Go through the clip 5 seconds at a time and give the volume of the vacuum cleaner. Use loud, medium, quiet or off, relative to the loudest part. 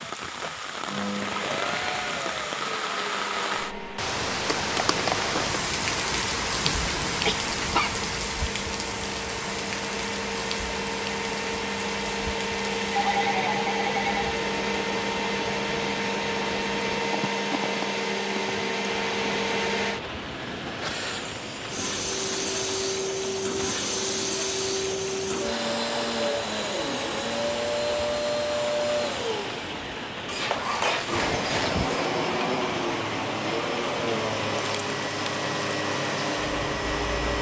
medium, medium, loud, loud, loud, loud, loud, loud.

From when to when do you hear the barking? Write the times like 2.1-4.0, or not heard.
6.7-8.0, 30.2-32.0.